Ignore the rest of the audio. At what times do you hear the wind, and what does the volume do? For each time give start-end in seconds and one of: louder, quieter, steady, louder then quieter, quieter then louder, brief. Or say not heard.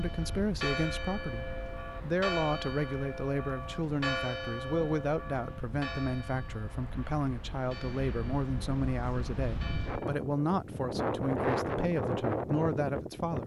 0.0-13.4 louder.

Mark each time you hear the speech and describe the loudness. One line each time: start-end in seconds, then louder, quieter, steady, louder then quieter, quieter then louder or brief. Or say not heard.
0.0-13.4 steady.